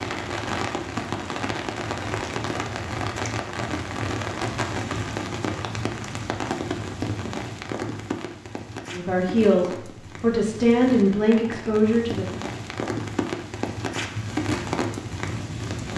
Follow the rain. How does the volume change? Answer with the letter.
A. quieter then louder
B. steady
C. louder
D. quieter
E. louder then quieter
A.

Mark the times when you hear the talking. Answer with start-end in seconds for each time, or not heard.
8.9-12.2.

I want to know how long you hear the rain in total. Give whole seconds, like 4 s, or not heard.
16 s.